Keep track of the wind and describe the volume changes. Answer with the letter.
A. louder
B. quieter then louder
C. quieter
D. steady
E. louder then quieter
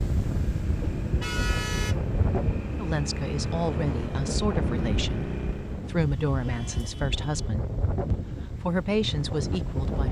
D.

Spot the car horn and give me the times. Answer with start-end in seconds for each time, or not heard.
1.2-1.9, 6.2-7.5.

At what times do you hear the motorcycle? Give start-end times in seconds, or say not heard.
0.1-5.9.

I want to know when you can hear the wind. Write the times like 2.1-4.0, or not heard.
0.0-10.0.